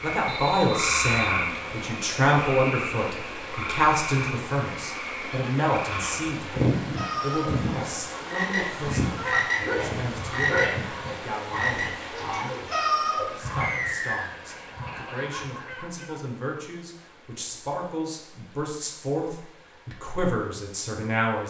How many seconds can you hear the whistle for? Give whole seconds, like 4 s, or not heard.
2 s.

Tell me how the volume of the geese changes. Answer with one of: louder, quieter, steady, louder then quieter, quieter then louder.
quieter.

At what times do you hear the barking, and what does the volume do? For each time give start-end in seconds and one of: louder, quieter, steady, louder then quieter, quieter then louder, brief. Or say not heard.
not heard.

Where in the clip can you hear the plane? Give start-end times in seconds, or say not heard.
not heard.